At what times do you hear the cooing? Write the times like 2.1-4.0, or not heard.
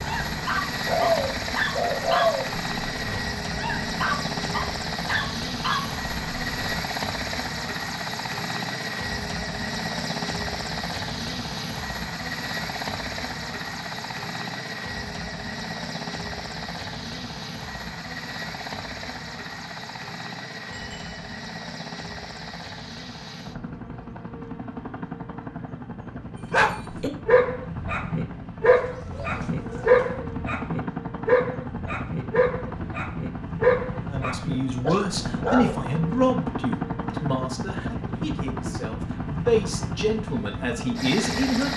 0.8-2.5, 28.6-30.2.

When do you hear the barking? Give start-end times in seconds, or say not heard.
0.0-6.8, 26.5-35.8.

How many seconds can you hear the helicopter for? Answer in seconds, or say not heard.
42 s.